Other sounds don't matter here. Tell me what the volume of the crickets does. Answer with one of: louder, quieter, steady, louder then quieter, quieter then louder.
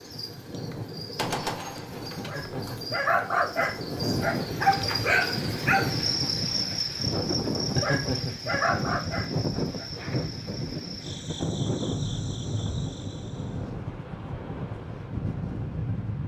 louder then quieter.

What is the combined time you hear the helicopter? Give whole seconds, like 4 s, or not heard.
not heard.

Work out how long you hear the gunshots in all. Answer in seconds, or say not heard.
2 s.